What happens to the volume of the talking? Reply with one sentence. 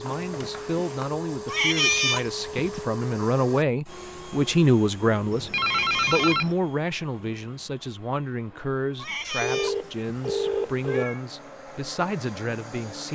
The loudness of the talking goes up, then down.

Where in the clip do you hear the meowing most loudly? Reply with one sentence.
The loudest moment of the meowing is at 2 seconds.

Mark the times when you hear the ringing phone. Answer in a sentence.
The ringing phone can be heard from 0.0 to 1.1 s, from 5.3 to 6.5 s and from 9.4 to 11.1 s.